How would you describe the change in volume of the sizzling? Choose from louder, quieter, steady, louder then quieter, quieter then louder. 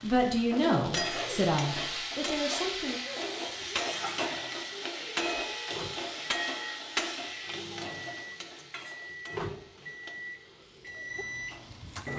quieter.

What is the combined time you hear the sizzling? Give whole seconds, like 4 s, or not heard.
12 s.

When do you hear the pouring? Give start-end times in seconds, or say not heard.
not heard.